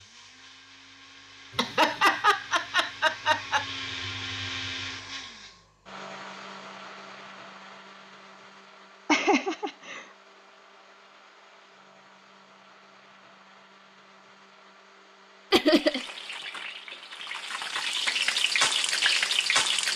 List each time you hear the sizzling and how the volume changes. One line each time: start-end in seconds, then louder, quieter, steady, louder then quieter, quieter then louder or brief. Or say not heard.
15.7-19.9 louder.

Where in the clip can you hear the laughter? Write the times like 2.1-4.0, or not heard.
1.6-3.6, 9.1-10.1, 15.5-16.1.